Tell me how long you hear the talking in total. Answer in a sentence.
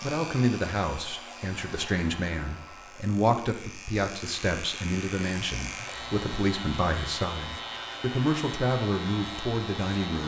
You can hear the talking for 10 seconds altogether.